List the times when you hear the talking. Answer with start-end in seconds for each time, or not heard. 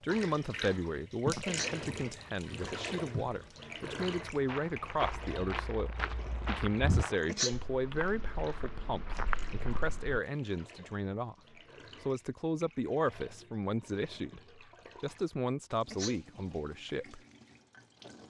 0.0-11.3, 12.0-17.2.